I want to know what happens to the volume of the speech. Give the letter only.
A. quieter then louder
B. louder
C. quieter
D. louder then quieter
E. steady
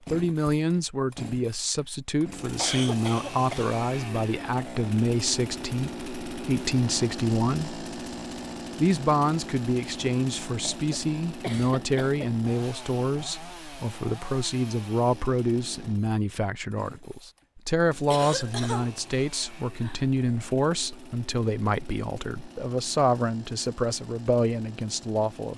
E.